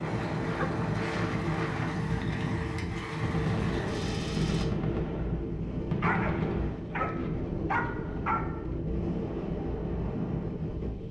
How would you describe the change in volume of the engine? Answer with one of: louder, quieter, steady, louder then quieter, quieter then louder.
steady.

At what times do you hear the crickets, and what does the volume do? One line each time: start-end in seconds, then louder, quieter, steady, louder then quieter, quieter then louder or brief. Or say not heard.
not heard.